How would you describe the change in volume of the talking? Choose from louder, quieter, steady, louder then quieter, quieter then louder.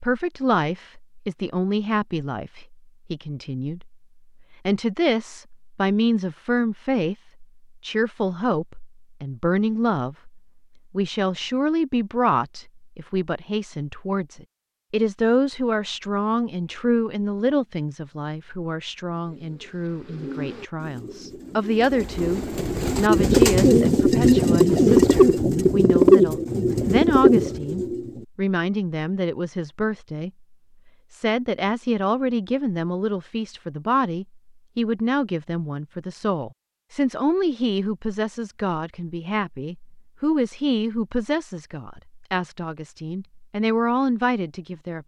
steady.